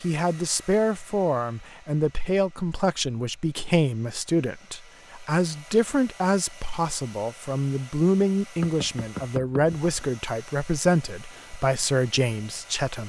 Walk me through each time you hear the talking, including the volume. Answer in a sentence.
The talking can be heard from 0.0 to 13.0 s, at a steady volume.